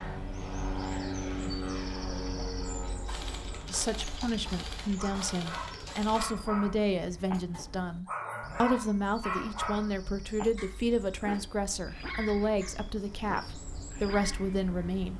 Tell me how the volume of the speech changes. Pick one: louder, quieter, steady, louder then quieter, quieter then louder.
steady.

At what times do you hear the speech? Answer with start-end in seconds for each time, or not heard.
3.7-15.1.